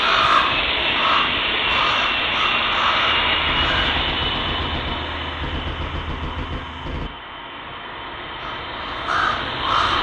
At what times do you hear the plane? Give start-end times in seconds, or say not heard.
0.0-9.9.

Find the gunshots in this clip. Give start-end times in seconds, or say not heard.
3.2-7.1.